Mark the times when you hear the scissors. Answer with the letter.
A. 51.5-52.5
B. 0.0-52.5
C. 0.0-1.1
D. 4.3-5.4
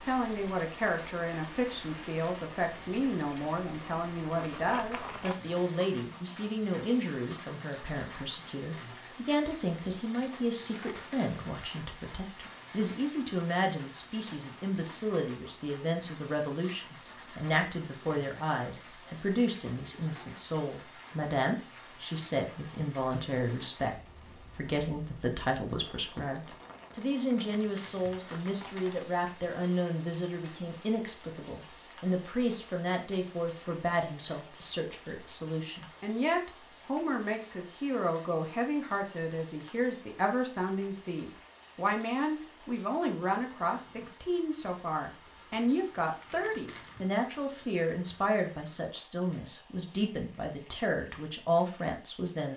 D.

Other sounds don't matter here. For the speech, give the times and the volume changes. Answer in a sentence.
The speech can be heard from 0.0 to 52.5 s, at a steady volume.